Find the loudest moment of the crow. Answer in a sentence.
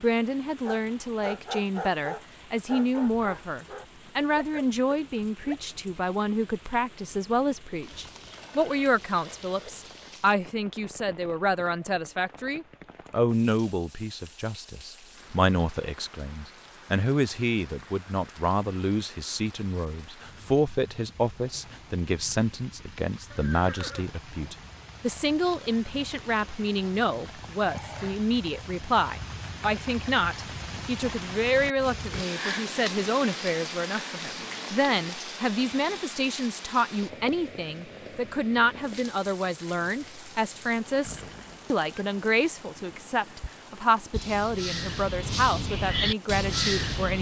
The loudest moment of the crow is at 47 seconds.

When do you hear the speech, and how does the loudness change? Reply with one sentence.
You can hear the speech from 0.0 to 47.1 s, at a steady volume.